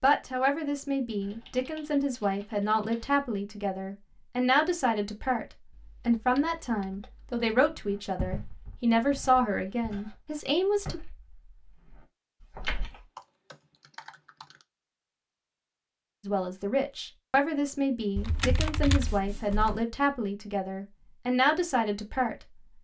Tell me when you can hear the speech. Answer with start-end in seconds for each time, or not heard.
0.0-11.0, 16.2-22.4.